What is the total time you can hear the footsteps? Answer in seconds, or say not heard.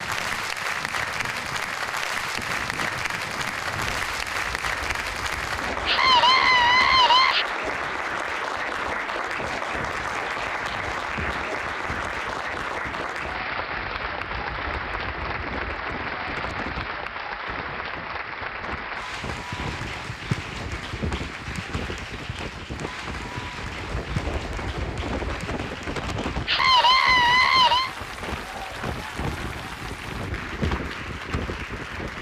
not heard.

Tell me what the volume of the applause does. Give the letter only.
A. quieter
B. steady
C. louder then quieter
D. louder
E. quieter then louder
A.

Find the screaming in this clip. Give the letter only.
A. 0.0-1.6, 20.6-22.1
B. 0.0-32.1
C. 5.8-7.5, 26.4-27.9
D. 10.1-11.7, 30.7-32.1
C.